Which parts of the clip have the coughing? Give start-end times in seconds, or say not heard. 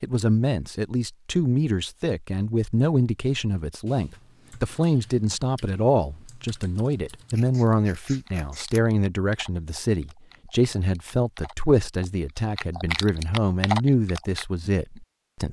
not heard.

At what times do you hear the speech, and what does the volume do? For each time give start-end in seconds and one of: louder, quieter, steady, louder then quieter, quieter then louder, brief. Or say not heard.
0.0-15.4 steady.